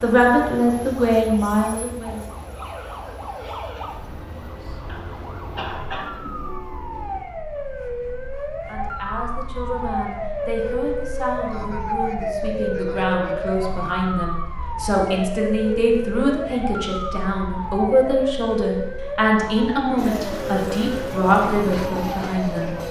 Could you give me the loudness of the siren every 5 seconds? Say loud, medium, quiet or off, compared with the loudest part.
medium, medium, loud, loud, loud.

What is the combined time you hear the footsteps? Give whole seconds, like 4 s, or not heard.
not heard.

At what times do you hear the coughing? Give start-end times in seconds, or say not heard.
4.8-6.2.